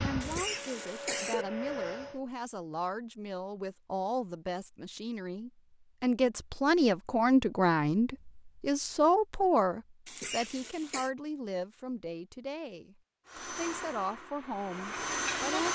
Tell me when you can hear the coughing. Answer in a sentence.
The coughing can be heard from 0.2 to 1.4 s and from 10.1 to 11.1 s.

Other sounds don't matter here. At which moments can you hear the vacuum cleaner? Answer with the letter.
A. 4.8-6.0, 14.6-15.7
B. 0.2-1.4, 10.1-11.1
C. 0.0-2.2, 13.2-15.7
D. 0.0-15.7
C.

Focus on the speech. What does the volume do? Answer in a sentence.
The volume of the speech goes up, then down.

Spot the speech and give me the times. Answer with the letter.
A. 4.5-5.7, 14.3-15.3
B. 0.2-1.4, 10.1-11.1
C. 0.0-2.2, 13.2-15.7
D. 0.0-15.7
D.